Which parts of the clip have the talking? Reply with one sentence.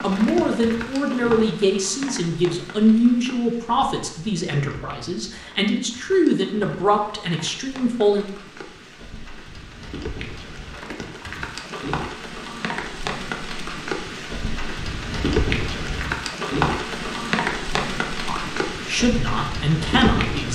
The talking can be heard from 0.0 to 8.2 s and from 18.2 to 20.5 s.